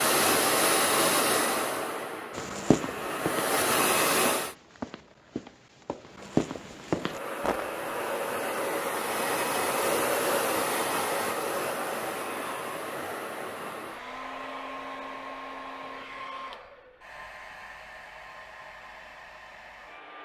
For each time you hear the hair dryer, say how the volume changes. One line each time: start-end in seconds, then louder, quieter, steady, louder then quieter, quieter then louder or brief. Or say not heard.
0.0-4.5 quieter then louder
7.0-20.2 quieter.